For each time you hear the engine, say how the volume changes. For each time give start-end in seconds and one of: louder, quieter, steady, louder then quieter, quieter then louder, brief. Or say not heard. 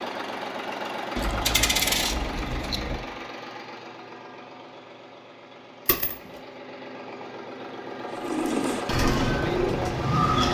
0.0-10.4 quieter then louder.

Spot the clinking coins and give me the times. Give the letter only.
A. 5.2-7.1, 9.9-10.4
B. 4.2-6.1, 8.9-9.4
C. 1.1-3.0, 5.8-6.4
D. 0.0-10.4
C.